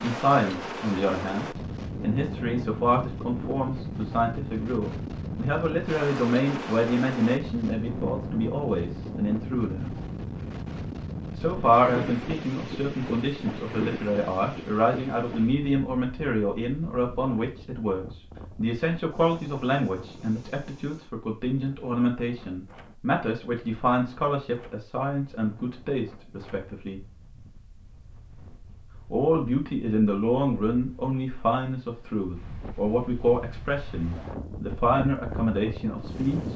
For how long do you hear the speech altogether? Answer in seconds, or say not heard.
33 s.